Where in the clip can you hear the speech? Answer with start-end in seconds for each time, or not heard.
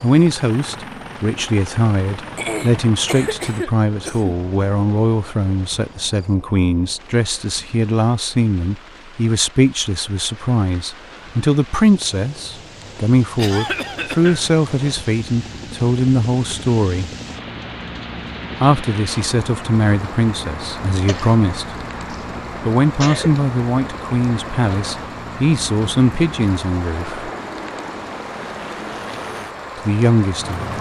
0.0-17.1, 18.6-21.8, 22.6-27.2, 29.9-30.6.